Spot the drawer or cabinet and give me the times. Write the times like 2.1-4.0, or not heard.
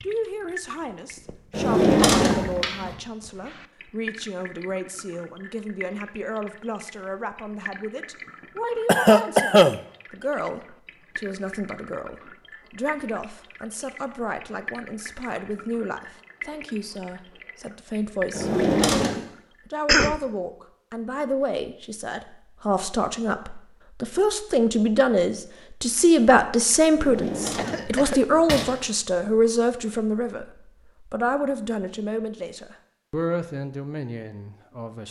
1.5-3.0, 18.3-19.1, 26.9-28.7.